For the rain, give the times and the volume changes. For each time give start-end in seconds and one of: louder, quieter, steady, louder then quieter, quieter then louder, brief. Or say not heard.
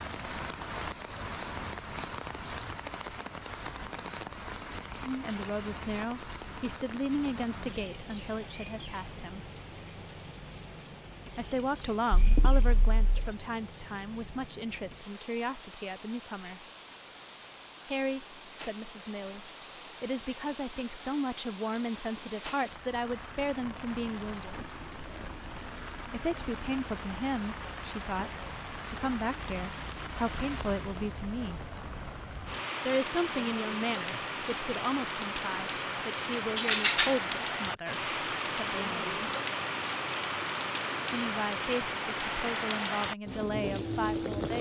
0.0-44.5 quieter then louder.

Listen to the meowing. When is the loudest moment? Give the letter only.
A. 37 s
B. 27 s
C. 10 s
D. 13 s
A.